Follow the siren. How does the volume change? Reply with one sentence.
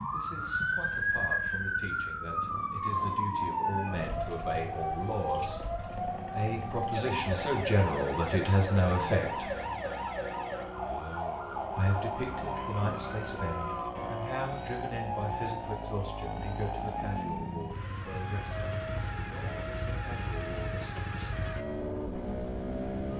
The volume of the siren goes down.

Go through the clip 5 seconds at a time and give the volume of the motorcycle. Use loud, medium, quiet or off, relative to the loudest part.
medium, medium, loud, loud, loud.